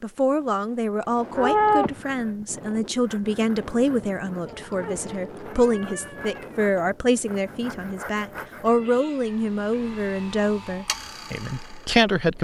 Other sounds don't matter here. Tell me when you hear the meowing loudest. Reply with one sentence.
The volume of the meowing peaks at 2 seconds.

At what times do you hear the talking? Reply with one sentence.
The talking can be heard from 0.0 to 12.3 s.